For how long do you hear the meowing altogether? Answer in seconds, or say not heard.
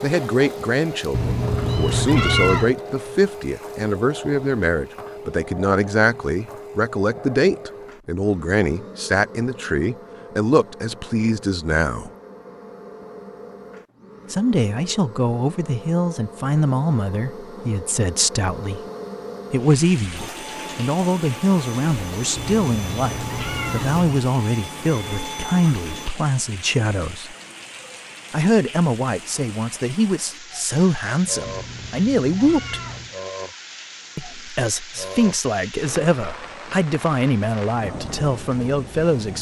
5 s.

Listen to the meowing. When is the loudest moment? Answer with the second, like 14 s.
2 s.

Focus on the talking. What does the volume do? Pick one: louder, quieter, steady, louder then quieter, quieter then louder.
steady.